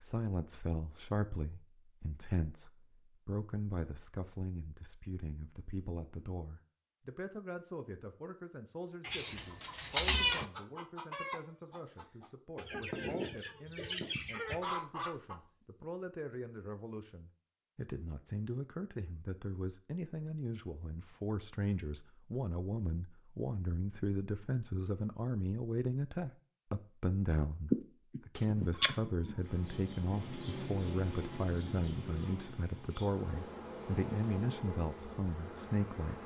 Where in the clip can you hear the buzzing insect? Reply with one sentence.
You can hear the buzzing insect from 29.4 to 36.2 s.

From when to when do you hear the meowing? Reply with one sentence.
The meowing can be heard from 9.1 to 10.4 s and from 27.7 to 29.4 s.